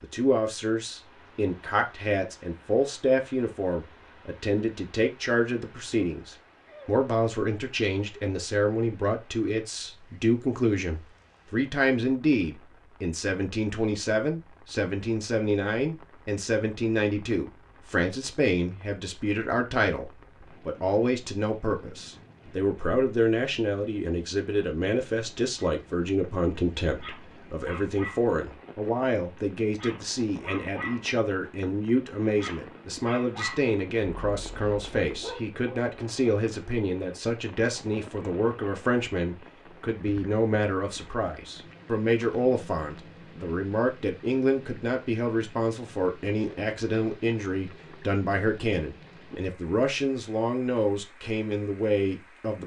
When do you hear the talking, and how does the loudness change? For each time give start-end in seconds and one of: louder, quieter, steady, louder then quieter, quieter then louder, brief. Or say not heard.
0.0-52.6 steady.